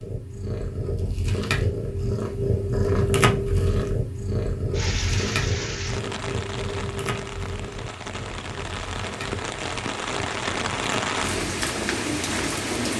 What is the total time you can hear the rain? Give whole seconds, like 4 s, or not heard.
8 s.